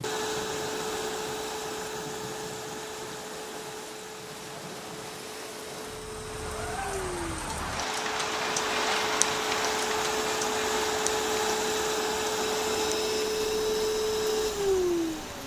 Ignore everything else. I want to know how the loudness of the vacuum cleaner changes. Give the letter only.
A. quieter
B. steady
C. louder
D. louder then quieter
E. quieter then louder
E.